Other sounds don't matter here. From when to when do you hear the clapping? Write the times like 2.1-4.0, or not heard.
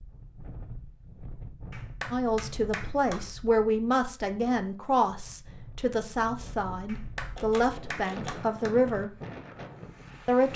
1.7-3.2, 6.8-8.8.